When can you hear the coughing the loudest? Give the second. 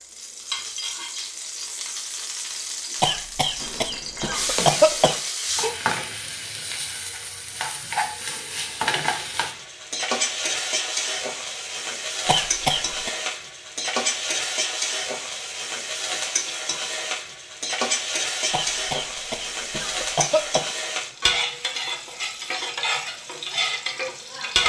5 s.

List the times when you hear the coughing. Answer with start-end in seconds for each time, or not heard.
3.0-5.2, 12.2-13.1, 18.5-20.6.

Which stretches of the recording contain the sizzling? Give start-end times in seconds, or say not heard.
0.0-24.6.